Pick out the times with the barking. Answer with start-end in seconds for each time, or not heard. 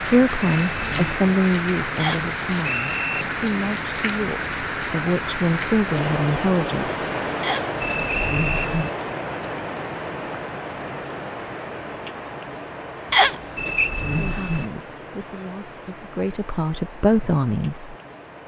not heard.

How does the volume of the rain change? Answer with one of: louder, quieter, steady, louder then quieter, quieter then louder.
quieter.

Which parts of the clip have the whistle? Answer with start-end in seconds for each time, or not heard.
1.9-3.2, 7.4-8.7, 13.1-13.9.